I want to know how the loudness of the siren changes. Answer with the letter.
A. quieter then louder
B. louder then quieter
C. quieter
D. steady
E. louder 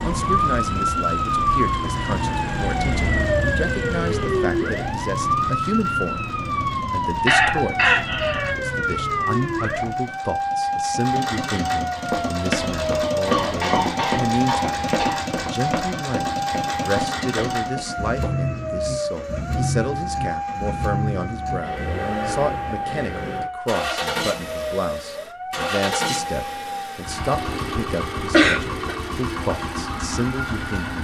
C.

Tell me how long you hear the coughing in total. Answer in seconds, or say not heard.
4 s.